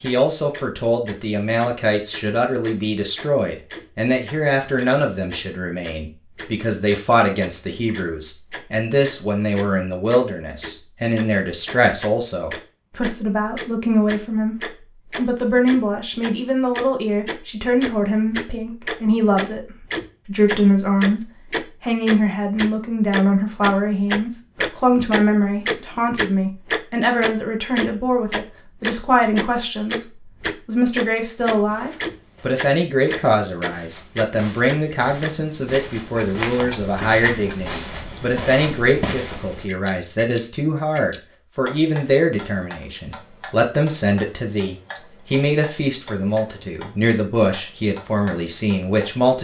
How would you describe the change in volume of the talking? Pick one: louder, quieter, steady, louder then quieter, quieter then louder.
steady.